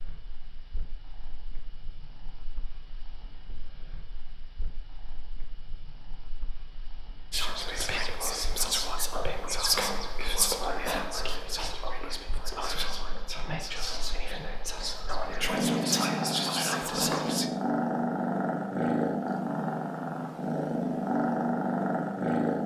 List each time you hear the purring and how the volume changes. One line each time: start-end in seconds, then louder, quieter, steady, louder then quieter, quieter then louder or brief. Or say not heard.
0.0-22.6 louder.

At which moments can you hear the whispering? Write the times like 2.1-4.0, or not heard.
7.3-17.5.